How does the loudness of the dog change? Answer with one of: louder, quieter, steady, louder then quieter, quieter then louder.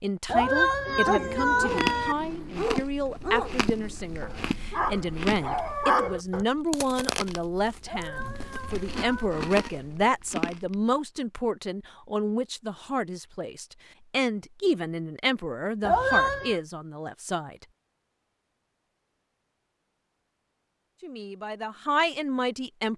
louder.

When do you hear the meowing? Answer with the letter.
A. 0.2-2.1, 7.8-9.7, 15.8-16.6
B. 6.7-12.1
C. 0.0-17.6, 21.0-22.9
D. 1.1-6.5
A.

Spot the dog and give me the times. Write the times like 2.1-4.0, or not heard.
1.1-6.5.